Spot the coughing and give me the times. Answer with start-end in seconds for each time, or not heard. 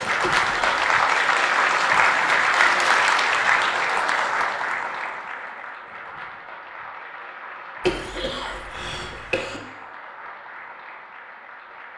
0.2-0.9, 7.8-9.6.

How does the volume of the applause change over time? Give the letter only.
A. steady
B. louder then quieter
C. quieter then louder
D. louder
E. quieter
E.